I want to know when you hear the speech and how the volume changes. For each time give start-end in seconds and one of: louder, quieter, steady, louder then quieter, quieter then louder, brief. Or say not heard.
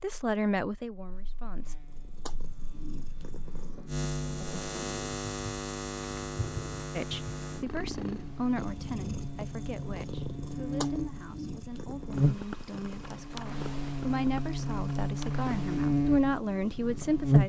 0.0-1.8 brief
7.0-17.4 quieter then louder.